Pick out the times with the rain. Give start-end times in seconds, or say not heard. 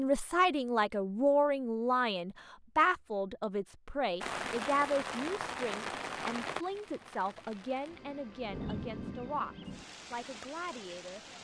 4.2-11.3.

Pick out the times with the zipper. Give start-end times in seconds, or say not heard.
not heard.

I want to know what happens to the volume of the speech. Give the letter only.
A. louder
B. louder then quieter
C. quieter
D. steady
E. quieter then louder
C.